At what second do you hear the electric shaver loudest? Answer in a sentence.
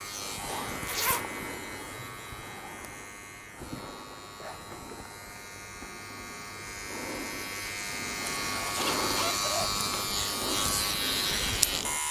The loudest moment of the electric shaver is at 11 seconds.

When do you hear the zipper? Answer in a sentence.
The zipper can be heard from 0.8 to 1.2 s and from 8.3 to 9.8 s.